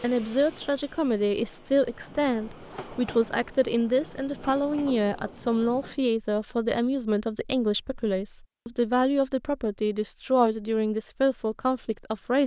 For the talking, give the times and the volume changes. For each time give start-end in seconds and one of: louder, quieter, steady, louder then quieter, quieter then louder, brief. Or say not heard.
0.0-12.4 steady.